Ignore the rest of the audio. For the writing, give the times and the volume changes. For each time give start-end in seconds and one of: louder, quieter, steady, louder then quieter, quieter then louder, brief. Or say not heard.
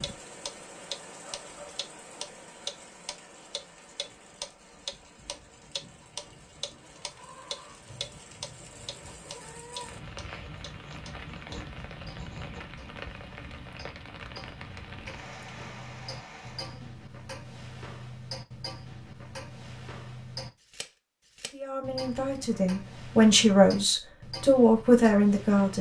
5.2-12.6 louder.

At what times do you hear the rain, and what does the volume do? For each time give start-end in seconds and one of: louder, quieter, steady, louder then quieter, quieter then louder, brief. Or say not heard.
0.0-16.9 quieter then louder.